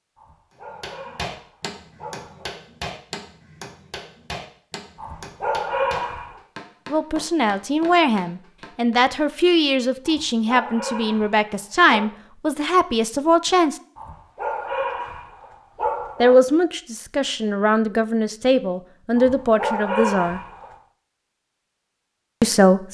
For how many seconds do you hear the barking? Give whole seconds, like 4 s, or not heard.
10 s.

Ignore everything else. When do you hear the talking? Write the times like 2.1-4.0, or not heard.
6.9-13.8, 16.2-20.4, 22.4-22.8.